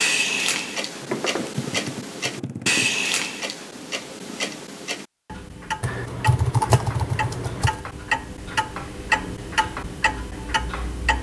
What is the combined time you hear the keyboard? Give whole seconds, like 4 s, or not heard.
4 s.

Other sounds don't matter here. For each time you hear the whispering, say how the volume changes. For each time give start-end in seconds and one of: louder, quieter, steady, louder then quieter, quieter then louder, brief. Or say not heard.
not heard.